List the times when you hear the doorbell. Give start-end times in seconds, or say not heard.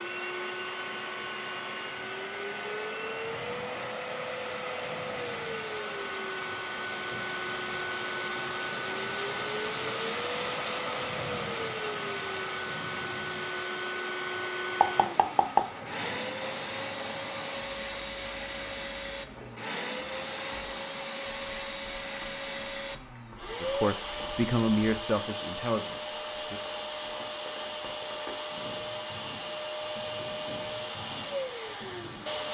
not heard.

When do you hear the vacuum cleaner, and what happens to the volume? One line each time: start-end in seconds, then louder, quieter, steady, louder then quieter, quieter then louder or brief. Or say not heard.
0.0-32.4 steady.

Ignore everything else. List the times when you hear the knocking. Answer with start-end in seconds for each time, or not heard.
14.8-15.7.